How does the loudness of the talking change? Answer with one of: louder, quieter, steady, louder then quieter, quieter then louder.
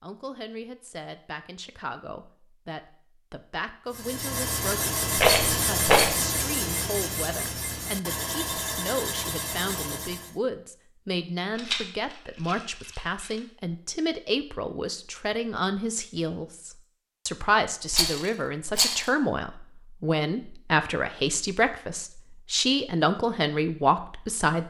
louder.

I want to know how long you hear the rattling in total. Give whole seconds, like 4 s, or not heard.
4 s.